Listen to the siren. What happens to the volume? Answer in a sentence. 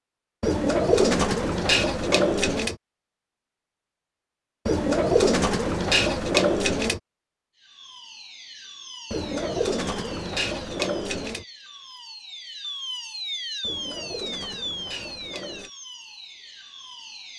The volume of the siren goes up, then down.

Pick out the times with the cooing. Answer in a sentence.
The cooing can be heard from 0.4 to 2.8 s, from 4.7 to 7.0 s, from 9.1 to 11.4 s and from 13.6 to 15.7 s.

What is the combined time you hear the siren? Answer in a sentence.
The siren can be heard for 10 seconds in total.